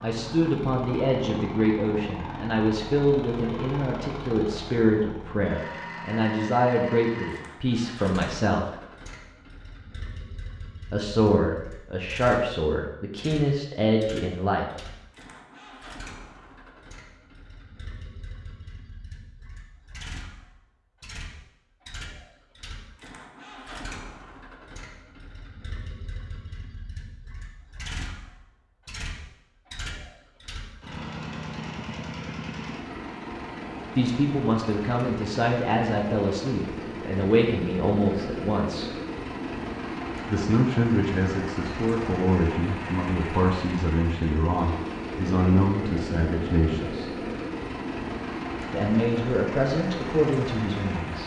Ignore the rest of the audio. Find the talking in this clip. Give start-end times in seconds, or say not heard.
0.0-8.7, 10.9-14.7, 34.0-38.9, 40.2-47.1, 48.7-51.2.